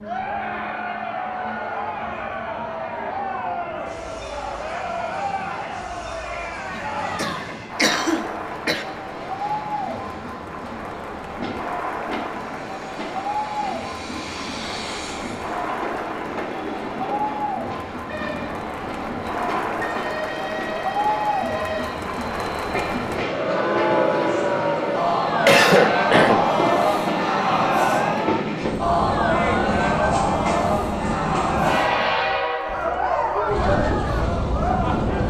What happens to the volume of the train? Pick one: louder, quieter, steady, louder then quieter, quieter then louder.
louder.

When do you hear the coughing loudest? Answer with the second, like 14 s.
26 s.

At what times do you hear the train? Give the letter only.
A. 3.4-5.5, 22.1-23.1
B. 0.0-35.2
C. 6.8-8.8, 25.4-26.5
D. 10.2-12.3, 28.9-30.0
B.